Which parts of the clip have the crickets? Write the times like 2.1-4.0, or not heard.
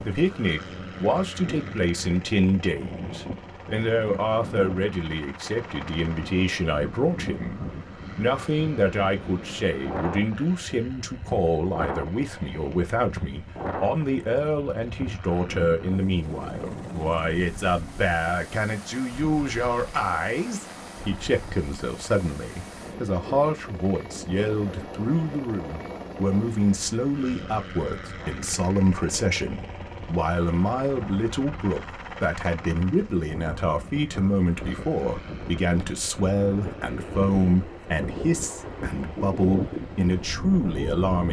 not heard.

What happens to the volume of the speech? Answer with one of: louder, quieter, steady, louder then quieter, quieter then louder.
steady.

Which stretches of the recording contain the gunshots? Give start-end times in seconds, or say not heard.
not heard.